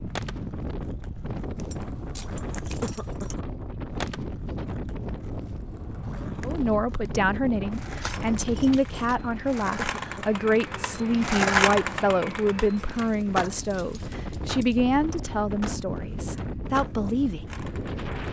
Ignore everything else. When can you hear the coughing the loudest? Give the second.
3 s.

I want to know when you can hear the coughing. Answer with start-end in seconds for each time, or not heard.
2.8-3.5, 9.8-10.4.